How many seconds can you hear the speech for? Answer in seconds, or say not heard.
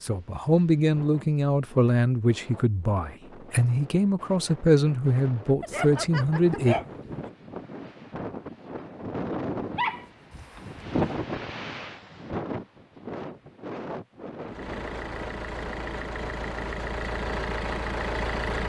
7 s.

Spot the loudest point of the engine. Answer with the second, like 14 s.
18 s.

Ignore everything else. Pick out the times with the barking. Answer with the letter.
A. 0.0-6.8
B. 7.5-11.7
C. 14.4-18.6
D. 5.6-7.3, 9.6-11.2
D.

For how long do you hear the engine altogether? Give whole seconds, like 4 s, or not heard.
4 s.